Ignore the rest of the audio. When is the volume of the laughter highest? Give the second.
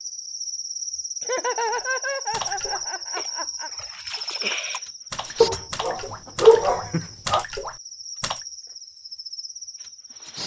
2 s.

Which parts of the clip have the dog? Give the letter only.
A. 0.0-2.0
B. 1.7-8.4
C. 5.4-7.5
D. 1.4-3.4
C.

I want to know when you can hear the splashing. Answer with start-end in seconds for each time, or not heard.
1.7-8.4.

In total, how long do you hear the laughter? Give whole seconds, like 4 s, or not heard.
3 s.